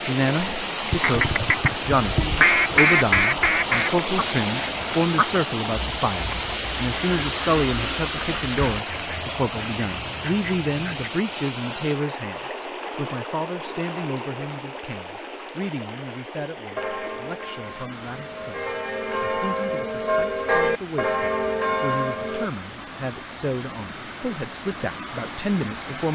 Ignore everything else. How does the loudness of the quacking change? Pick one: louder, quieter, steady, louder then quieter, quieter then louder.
quieter.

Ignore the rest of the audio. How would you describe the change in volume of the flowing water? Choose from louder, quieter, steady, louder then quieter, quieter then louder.
quieter.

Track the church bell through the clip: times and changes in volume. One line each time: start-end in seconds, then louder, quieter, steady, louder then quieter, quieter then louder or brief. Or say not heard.
16.8-22.5 louder.